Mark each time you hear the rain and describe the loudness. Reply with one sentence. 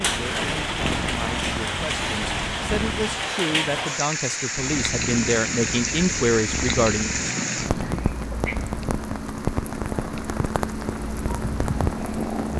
The rain can be heard from 0.0 to 12.5 s, at a steady volume.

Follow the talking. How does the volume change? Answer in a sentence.
The loudness of the talking goes up.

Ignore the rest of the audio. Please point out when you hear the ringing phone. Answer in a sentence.
You can't hear the ringing phone here.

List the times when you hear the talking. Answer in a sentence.
You can hear the talking from 0.0 to 7.1 s.